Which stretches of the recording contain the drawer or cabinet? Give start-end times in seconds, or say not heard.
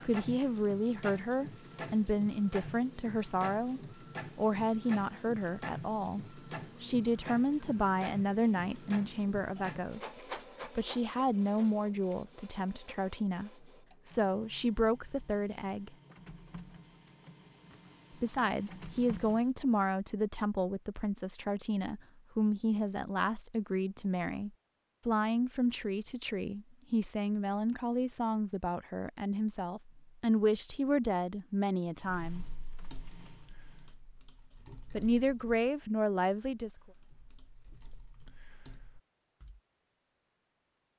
not heard.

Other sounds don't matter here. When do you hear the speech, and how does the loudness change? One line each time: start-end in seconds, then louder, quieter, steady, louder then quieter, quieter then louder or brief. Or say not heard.
0.0-10.2 steady
10.8-15.9 quieter then louder
18.2-32.5 steady
34.9-36.8 brief.